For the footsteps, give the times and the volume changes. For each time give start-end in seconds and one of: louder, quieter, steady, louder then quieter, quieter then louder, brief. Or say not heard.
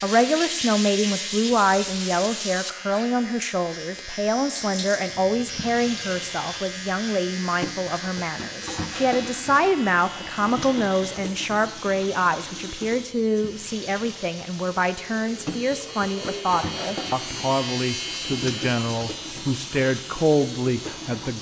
not heard.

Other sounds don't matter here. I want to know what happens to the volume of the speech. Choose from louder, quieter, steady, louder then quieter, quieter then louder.
steady.